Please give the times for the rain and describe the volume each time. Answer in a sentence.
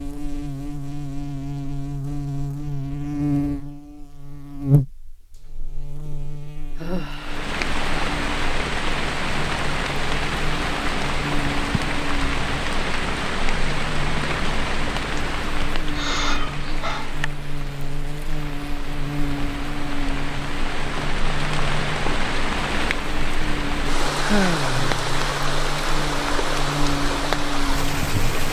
The rain can be heard from 7.2 to 28.4 s, getting quieter then louder.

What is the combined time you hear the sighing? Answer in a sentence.
The sighing can be heard for 3 seconds in total.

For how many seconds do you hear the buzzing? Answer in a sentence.
The buzzing can be heard for 28 seconds in total.